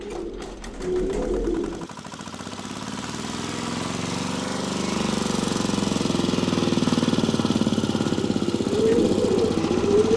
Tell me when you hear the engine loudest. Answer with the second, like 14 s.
7 s.